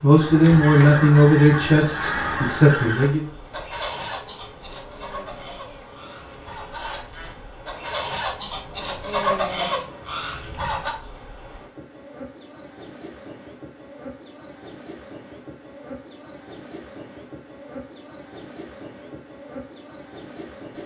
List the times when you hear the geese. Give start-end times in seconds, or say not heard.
0.1-10.9.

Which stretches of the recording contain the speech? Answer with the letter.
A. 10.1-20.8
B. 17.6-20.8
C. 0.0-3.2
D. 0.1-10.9
C.